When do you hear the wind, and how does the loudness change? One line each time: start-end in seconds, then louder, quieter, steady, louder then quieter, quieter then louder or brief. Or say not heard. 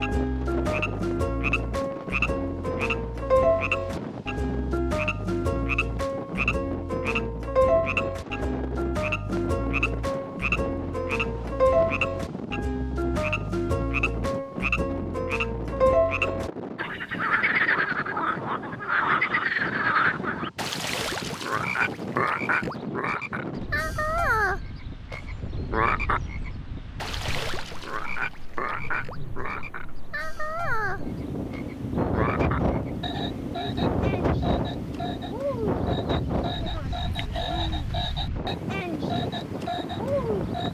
0.0-40.6 louder.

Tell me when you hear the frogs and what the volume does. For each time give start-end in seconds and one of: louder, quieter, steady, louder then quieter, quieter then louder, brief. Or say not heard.
0.0-40.6 quieter.